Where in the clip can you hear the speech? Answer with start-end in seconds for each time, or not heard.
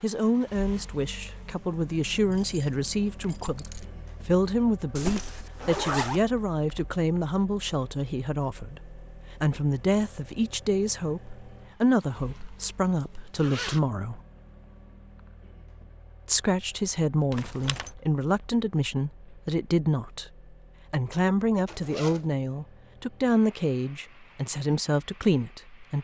0.0-14.2, 16.2-20.2, 20.9-25.9.